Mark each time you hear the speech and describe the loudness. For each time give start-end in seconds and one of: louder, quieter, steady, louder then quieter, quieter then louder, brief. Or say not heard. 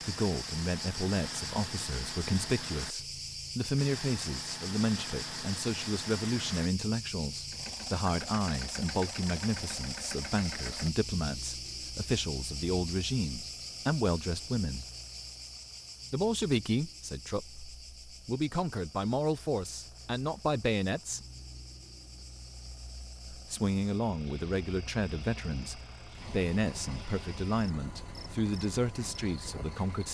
0.1-14.8 steady
16.1-21.2 quieter then louder
23.3-30.0 steady.